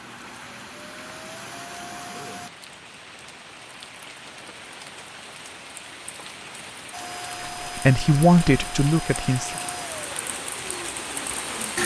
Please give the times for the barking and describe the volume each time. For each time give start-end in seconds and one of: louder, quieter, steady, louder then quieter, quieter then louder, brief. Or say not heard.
not heard.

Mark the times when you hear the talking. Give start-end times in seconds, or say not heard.
7.8-9.5.